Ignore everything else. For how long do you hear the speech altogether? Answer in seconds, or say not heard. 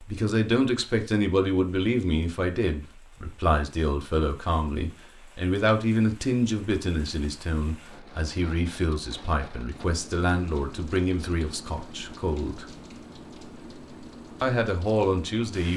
14 s.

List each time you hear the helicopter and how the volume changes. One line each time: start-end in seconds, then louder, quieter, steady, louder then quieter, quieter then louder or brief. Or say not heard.
not heard.